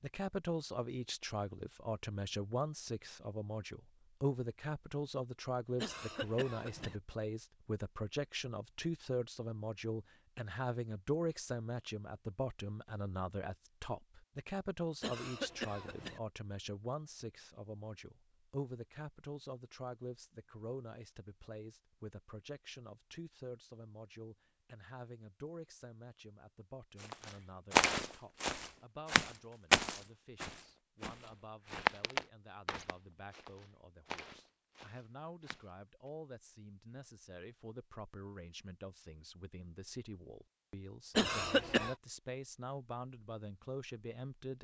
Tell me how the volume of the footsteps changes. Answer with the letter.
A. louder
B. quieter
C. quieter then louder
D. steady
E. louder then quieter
B.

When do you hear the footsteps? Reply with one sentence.
You can hear the footsteps from 27.0 to 35.6 s.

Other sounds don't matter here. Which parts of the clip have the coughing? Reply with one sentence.
The coughing can be heard from 5.8 to 7.0 s, from 15.0 to 16.2 s and from 41.1 to 42.0 s.